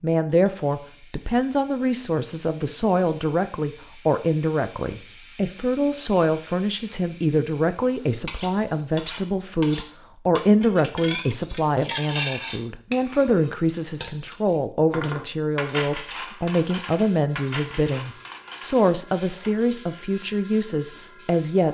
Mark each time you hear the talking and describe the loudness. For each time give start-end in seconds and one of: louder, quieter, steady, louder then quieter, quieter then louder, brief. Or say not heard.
0.0-21.7 steady.